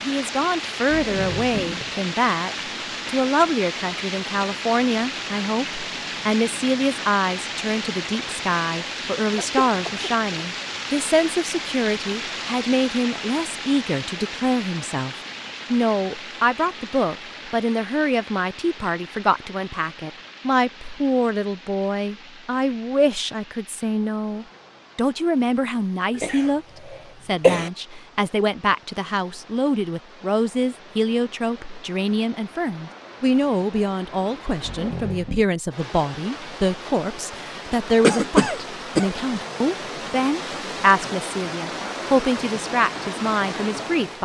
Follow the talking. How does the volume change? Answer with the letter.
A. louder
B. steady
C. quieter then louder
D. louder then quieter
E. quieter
B.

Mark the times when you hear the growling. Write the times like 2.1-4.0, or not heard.
0.8-1.9, 34.6-35.5.